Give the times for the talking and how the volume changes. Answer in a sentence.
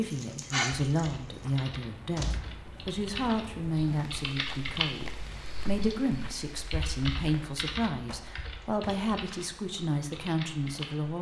The talking can be heard from 0.0 to 11.1 s, at a steady volume.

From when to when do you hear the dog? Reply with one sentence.
The dog can be heard from 0.0 to 1.1 s.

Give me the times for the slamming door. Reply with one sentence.
You can hear the slamming door from 2.1 to 2.6 s and from 8.1 to 9.1 s.